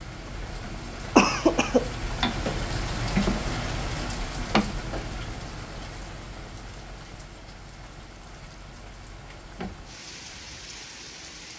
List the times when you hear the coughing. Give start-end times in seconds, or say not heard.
1.1-1.8.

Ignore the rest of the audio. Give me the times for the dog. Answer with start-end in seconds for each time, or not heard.
not heard.